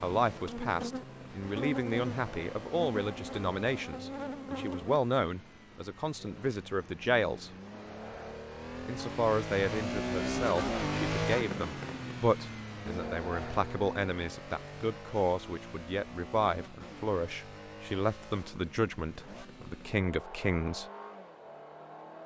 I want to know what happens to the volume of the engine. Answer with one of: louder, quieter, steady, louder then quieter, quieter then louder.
louder then quieter.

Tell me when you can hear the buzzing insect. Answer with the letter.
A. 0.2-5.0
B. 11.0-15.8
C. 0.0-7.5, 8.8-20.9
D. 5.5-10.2
A.